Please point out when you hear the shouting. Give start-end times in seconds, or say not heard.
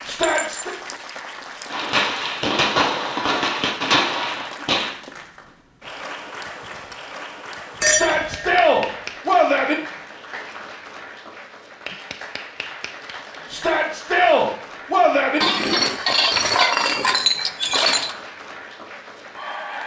0.1-0.8, 7.8-9.8, 13.5-15.4.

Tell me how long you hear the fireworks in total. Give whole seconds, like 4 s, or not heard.
3 s.